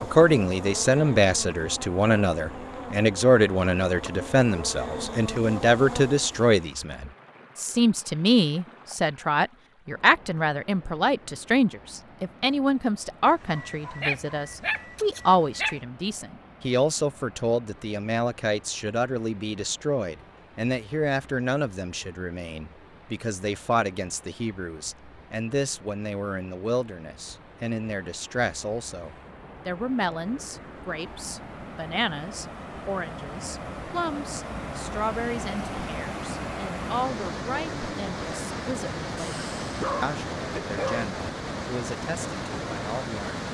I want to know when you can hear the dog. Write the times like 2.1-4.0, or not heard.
13.2-15.8, 39.1-41.0.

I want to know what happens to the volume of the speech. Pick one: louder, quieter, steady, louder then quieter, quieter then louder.
quieter.